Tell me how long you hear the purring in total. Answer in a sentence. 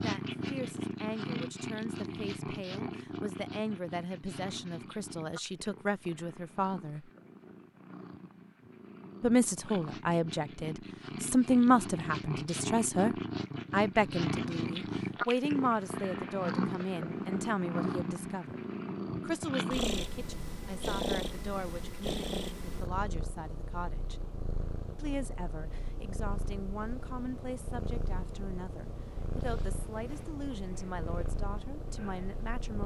The purring can be heard for 33 seconds in total.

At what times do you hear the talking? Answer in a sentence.
The talking can be heard from 0.0 to 7.1 s, from 9.2 to 18.6 s, from 19.2 to 24.2 s and from 24.9 to 32.8 s.